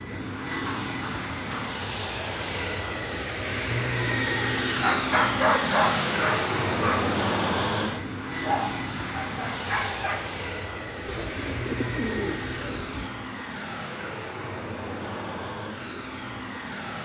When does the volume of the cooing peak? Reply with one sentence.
The loudest moment of the cooing is at 12 seconds.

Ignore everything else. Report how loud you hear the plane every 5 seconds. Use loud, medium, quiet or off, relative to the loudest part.
loud, loud, medium, medium.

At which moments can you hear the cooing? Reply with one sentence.
The cooing can be heard from 0.3 to 1.8 s and from 11.1 to 13.1 s.